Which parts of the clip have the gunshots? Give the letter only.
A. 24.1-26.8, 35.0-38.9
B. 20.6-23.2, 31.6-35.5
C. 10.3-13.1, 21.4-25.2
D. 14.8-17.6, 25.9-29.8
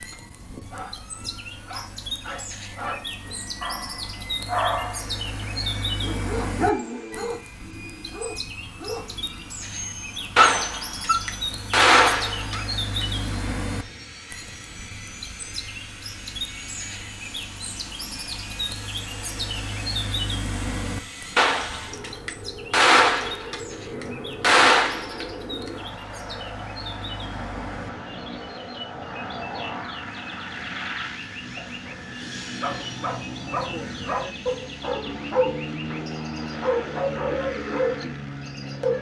C.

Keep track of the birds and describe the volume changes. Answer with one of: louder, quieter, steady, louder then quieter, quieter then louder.
quieter.